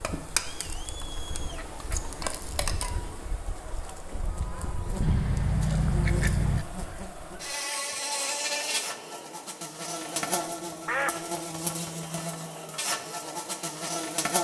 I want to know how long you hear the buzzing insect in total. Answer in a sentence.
You can hear the buzzing insect for 14 seconds altogether.